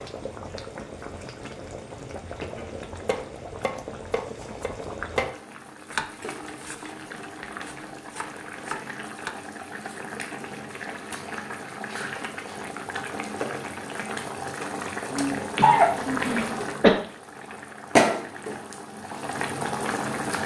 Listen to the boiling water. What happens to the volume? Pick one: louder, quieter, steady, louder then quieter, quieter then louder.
louder.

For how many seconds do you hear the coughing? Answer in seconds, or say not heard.
2 s.